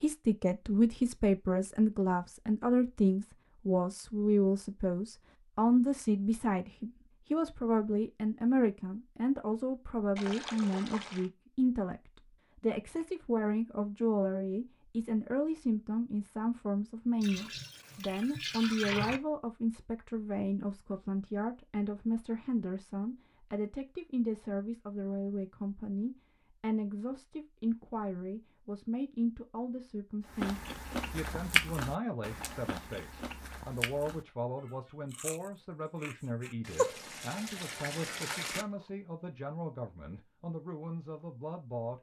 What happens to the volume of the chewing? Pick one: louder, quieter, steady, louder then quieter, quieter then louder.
quieter.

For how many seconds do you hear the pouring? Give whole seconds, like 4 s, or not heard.
5 s.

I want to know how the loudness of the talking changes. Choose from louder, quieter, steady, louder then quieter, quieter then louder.
quieter.